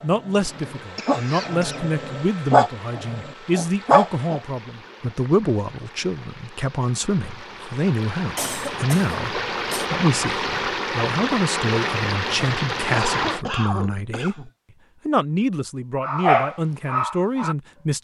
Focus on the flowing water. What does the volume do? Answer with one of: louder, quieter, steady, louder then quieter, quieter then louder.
louder.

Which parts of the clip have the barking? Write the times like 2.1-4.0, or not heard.
0.0-4.4, 16.0-17.6.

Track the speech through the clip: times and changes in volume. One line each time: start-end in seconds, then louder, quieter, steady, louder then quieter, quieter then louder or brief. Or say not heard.
0.0-17.9 steady.